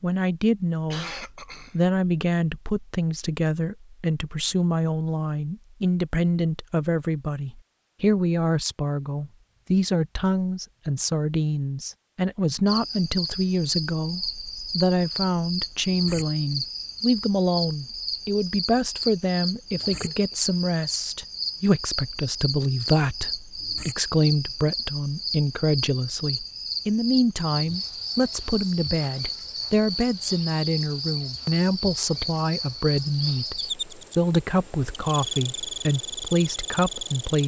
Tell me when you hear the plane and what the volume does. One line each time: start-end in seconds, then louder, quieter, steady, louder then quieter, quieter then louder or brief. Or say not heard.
not heard.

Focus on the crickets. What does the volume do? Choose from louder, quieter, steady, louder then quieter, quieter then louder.
steady.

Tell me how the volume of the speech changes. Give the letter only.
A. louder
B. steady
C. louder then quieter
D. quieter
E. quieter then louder
B.